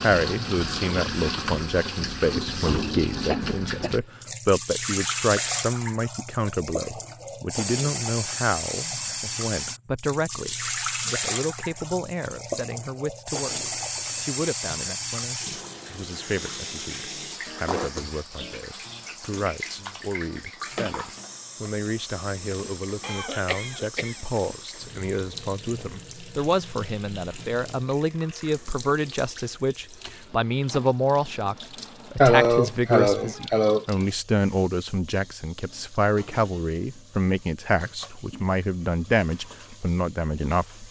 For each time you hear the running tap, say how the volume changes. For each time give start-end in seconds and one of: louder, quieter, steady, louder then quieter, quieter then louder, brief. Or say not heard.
0.0-40.8 quieter.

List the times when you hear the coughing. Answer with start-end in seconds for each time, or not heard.
3.2-4.0, 23.0-24.1, 32.1-33.9.